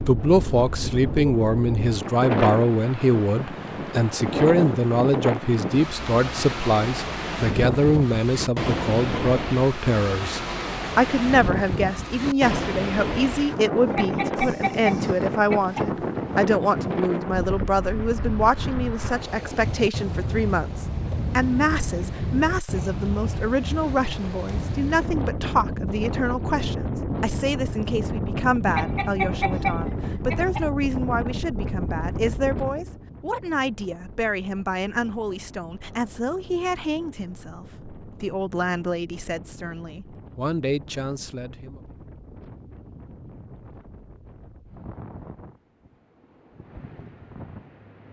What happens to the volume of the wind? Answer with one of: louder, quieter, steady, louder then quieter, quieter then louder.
quieter.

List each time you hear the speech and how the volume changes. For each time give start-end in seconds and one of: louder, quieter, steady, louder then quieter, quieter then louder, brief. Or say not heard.
0.1-41.8 quieter.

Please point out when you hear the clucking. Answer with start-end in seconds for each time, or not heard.
13.9-15.9, 28.7-30.7.